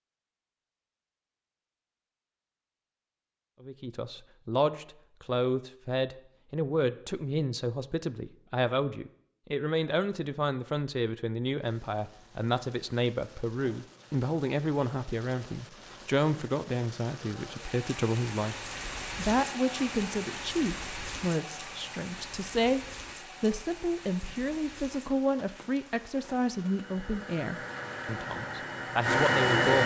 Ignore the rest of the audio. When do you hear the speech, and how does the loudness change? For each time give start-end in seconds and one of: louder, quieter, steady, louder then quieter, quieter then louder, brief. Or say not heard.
3.6-29.8 steady.